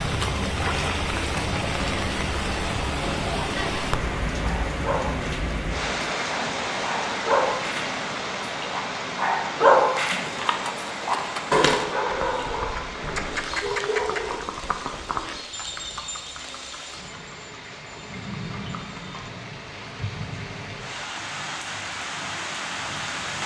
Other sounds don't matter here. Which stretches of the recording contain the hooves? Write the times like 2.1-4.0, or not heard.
9.9-19.3.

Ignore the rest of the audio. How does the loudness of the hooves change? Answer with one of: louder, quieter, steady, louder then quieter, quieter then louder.
quieter.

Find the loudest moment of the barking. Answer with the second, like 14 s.
10 s.